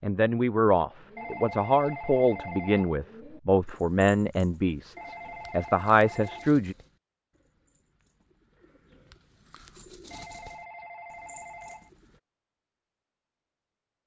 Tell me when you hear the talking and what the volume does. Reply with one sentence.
You can hear the talking from 0.0 to 6.8 s, at a steady volume.